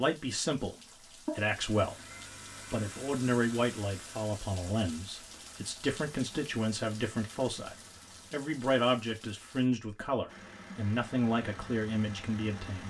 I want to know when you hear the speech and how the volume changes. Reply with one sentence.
The speech can be heard from 0.0 to 12.8 s, at a steady volume.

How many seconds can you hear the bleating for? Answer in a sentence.
You can't hear the bleating here.